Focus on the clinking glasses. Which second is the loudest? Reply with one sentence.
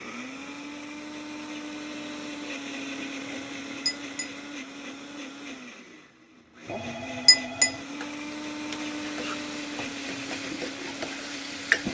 The loudest moment of the clinking glasses is at 7 seconds.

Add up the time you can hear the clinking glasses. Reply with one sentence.
The clinking glasses can be heard for 2 seconds in total.